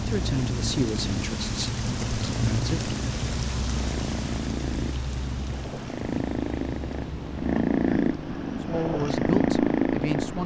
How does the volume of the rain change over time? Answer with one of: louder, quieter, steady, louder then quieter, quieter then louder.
quieter.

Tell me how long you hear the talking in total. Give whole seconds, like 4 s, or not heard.
5 s.